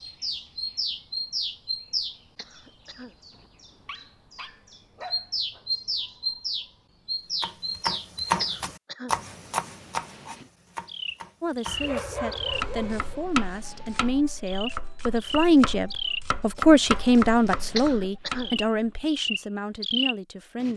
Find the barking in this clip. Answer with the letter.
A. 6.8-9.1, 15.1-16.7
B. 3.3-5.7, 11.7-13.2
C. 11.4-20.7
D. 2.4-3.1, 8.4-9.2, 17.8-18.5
B.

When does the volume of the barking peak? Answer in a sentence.
The loudest moment of the barking is at 12 seconds.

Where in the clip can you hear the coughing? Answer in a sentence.
The coughing can be heard from 2.4 to 3.1 s, from 8.4 to 9.2 s and from 17.8 to 18.5 s.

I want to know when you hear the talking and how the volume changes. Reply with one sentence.
The talking can be heard from 11.4 to 20.7 s, getting louder then quieter.